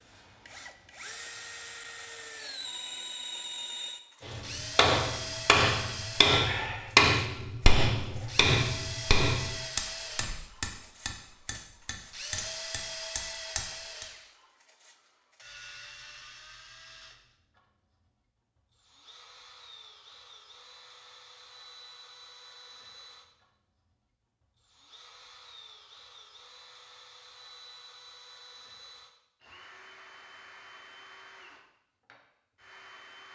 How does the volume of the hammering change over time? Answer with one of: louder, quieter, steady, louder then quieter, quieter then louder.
quieter.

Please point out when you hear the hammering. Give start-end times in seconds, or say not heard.
4.2-14.1.